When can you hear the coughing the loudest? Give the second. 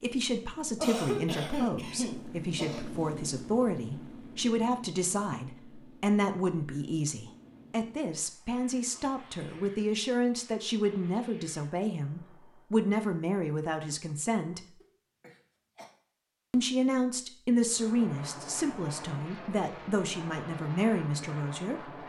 1 s.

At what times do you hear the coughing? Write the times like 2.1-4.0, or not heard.
0.8-2.9, 8.9-9.8, 14.8-15.9.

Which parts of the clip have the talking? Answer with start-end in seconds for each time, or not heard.
0.0-14.6, 16.5-22.0.